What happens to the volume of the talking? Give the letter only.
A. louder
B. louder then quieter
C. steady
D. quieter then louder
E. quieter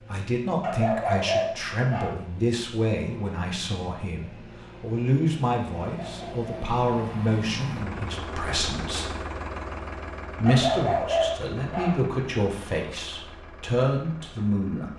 C.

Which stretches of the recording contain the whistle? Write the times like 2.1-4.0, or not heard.
not heard.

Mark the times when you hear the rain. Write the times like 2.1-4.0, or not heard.
not heard.